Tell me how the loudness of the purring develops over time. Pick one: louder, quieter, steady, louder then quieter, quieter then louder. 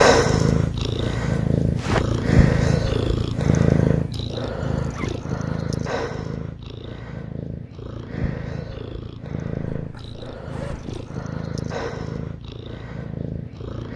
quieter.